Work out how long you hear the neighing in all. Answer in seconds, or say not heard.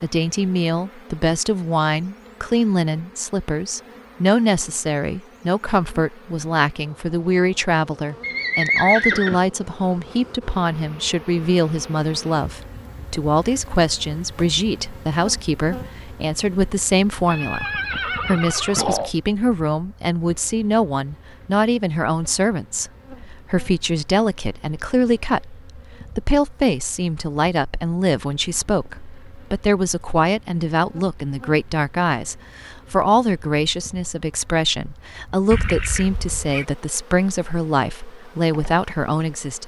4 s.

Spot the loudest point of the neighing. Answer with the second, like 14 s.
9 s.